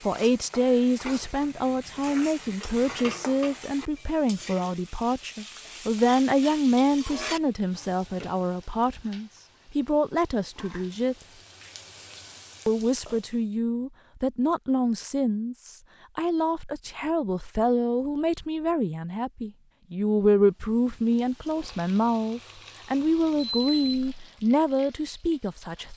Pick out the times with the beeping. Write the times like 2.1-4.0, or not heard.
23.4-24.2.